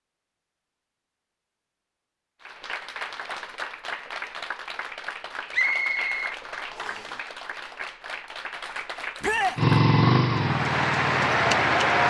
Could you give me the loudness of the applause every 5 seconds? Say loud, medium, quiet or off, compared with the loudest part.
quiet, quiet, loud.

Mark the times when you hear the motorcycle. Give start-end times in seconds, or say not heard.
9.6-12.0.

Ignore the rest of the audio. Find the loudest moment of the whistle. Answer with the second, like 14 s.
6 s.